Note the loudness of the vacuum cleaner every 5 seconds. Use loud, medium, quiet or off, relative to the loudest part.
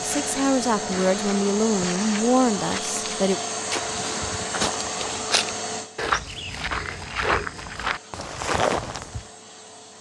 loud, medium.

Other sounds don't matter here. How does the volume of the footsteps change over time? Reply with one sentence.
The volume of the footsteps goes up.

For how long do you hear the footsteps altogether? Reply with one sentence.
You can hear the footsteps for 9 seconds altogether.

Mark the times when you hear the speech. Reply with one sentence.
The speech can be heard from 0.0 to 3.4 s.